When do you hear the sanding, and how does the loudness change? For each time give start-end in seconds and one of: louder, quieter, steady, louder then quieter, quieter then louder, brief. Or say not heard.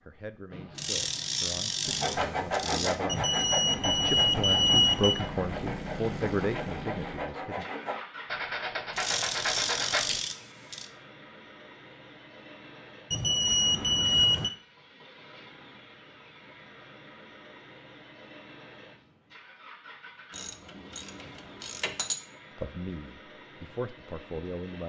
1.9-10.2 quieter then louder.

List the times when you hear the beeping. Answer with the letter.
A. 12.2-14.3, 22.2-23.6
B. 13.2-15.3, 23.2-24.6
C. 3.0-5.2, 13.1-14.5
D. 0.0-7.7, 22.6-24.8
C.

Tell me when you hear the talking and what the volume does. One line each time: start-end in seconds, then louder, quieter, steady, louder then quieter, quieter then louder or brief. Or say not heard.
0.0-7.7 louder
22.6-24.8 brief.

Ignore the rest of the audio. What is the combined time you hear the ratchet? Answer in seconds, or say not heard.
6 s.